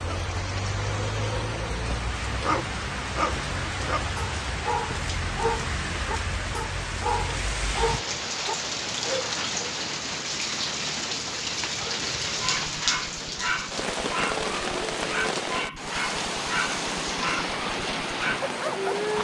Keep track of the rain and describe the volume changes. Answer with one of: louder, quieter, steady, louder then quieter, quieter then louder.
steady.